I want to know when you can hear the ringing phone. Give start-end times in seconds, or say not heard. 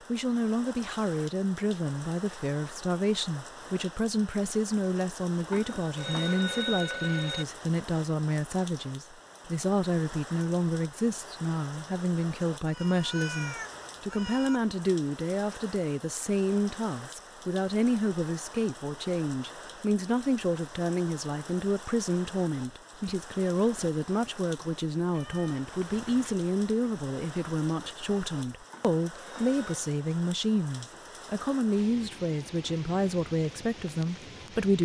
5.5-7.5, 28.7-29.7.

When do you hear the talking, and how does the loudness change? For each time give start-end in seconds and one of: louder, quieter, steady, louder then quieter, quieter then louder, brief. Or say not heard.
0.1-34.7 steady.